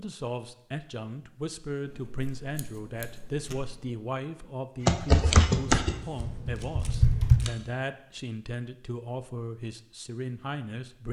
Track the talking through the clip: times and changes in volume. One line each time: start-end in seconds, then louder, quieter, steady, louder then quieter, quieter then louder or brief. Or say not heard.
0.0-11.0 steady.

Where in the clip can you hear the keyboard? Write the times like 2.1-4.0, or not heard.
4.8-7.4.